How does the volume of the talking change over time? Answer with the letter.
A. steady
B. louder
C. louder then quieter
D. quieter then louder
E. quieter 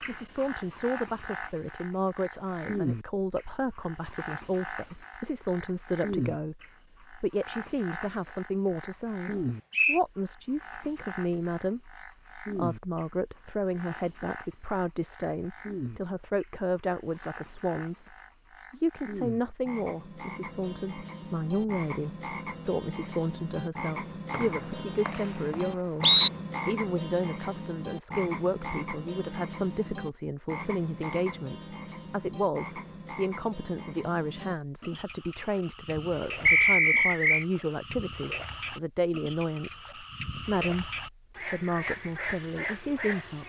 A.